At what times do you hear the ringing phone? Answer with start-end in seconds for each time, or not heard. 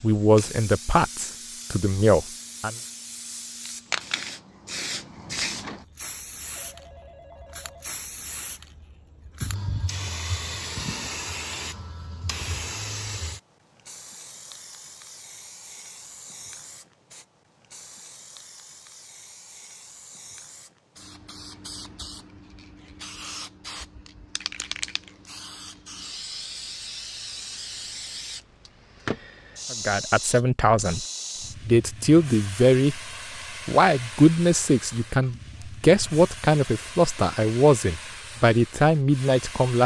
6.5-8.0.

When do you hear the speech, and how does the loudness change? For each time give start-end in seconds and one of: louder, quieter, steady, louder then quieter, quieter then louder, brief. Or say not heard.
0.0-2.8 brief
29.7-31.1 brief
31.6-33.0 brief
33.6-39.8 steady.